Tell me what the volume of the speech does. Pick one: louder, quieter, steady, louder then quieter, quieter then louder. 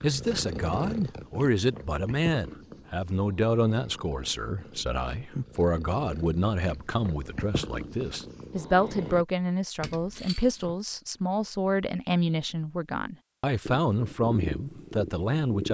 steady.